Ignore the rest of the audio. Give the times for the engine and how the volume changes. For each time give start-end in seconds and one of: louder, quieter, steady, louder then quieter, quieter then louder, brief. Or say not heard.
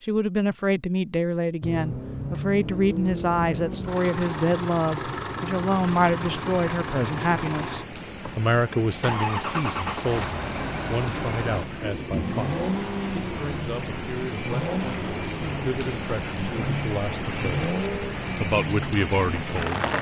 1.6-19.9 steady.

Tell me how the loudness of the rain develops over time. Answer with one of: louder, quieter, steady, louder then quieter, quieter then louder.
louder.